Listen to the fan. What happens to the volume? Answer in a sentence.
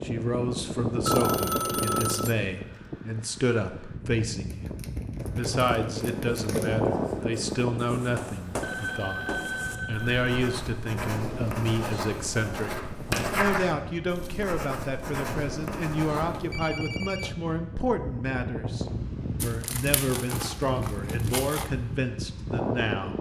The volume of the fan goes down, then up.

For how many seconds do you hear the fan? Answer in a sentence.
You can hear the fan for 23 seconds altogether.